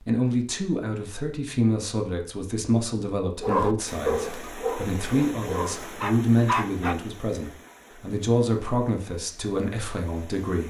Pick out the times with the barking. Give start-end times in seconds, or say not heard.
3.4-7.0.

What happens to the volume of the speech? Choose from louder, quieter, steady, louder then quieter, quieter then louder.
steady.